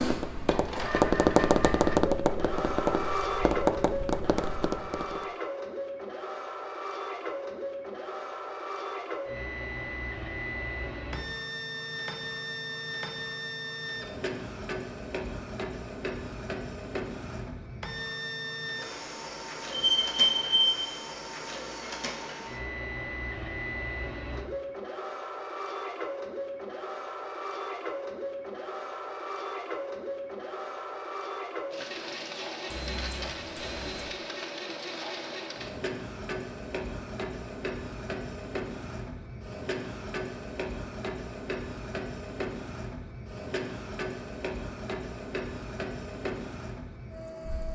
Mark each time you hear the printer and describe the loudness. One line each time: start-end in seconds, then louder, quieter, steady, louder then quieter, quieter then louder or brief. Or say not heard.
0.0-47.6 steady.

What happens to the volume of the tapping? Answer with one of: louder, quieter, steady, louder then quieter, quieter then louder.
quieter.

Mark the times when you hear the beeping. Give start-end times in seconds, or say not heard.
19.7-20.8, 32.7-34.0.